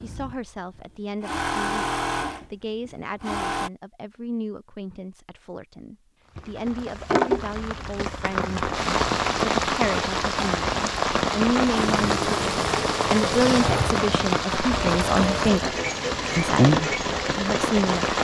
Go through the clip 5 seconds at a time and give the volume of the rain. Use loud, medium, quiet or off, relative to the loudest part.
off, loud, loud, loud.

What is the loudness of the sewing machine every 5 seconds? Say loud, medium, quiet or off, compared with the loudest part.
loud, off, loud, loud.